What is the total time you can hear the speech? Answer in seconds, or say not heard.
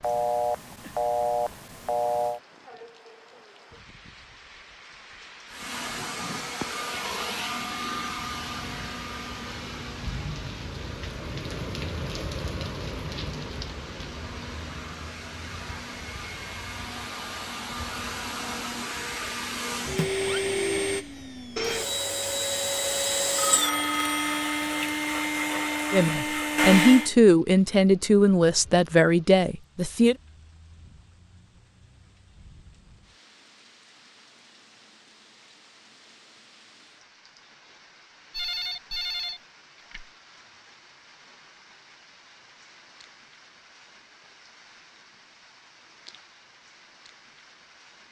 4 s.